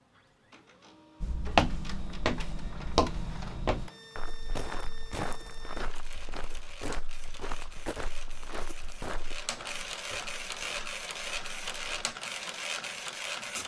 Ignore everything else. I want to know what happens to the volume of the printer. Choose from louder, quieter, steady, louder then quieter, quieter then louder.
louder.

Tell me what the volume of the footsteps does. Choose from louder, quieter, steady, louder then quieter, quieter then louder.
quieter.